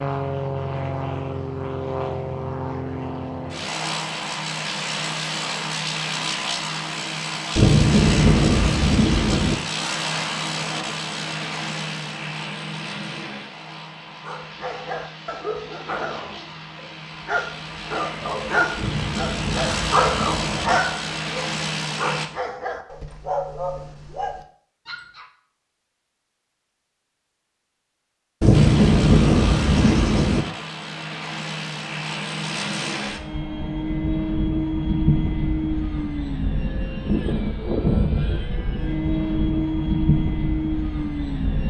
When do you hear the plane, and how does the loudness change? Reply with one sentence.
The plane can be heard from 0.0 to 22.3 s, getting quieter then louder; and from 28.5 to 41.6 s, getting louder.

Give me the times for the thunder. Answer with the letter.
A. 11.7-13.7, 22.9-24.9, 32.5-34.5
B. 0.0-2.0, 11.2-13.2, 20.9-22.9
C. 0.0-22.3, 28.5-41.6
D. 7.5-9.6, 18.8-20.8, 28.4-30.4
D.